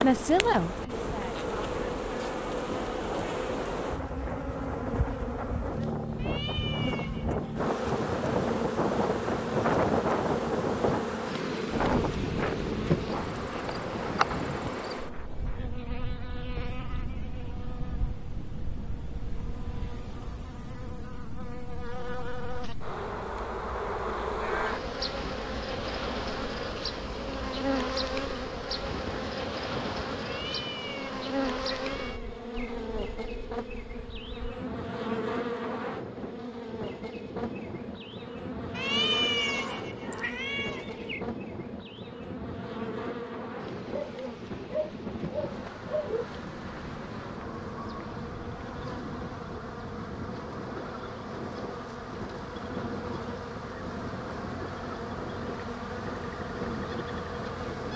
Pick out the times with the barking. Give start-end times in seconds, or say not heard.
43.9-46.3.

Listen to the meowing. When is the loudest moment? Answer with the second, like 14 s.
39 s.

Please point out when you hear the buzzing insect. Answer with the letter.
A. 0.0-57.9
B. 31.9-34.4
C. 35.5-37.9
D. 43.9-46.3
A.